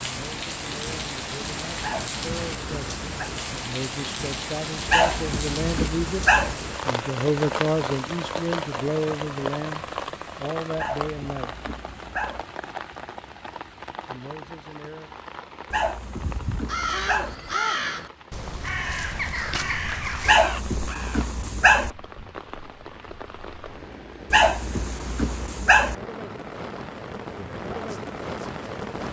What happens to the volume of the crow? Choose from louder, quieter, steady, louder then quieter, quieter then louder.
quieter.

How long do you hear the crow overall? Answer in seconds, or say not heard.
8 s.